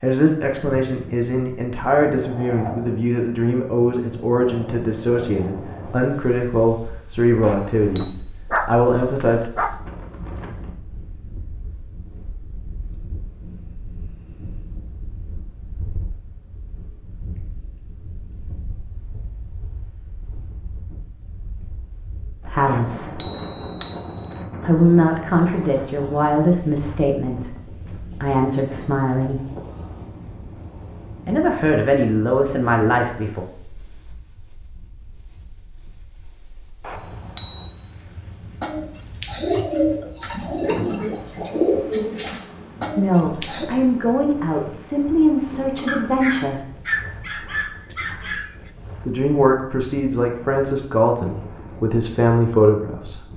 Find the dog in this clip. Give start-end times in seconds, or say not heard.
8.0-9.8, 45.9-48.7.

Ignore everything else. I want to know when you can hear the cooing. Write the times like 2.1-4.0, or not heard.
38.6-43.7.